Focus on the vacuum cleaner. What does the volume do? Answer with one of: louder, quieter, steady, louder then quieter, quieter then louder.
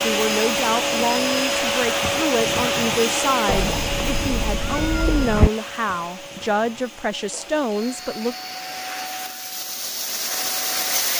quieter then louder.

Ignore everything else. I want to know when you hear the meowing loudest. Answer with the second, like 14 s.
5 s.